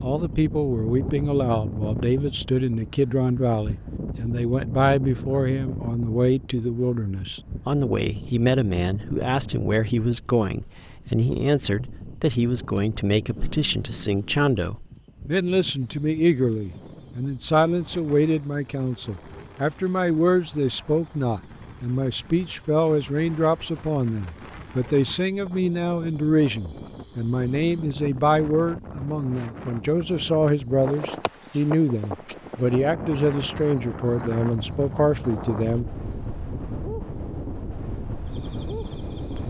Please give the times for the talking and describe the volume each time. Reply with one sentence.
The talking can be heard from 0.0 to 35.9 s, at a steady volume.